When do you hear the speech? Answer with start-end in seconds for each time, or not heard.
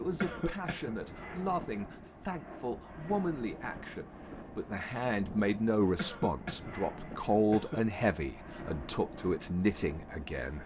0.0-10.6.